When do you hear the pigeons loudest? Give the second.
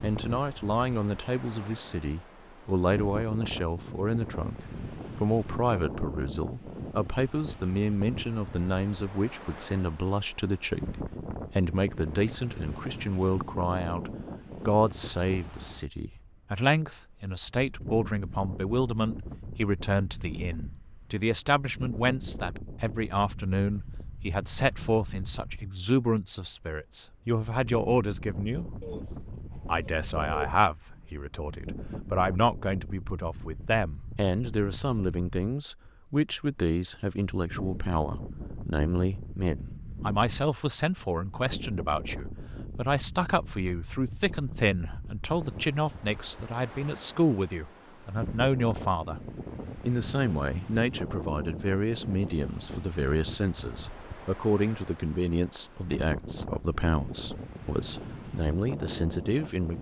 30 s.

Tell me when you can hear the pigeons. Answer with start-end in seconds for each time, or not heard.
28.8-30.6.